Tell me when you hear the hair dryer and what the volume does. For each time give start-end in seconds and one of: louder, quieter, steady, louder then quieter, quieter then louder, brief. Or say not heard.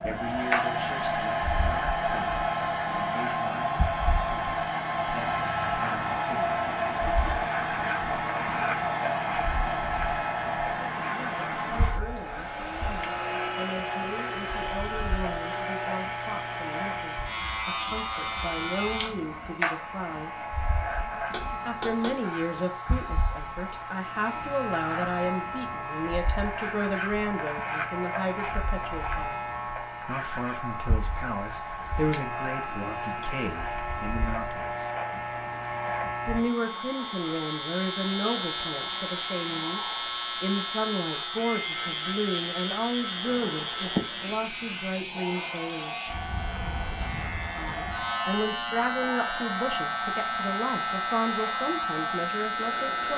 0.0-53.1 quieter.